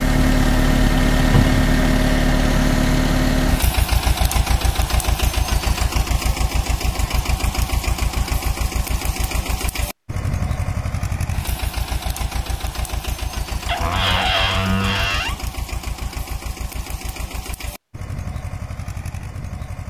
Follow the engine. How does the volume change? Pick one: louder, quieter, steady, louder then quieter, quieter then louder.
quieter.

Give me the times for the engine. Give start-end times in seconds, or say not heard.
0.0-19.8.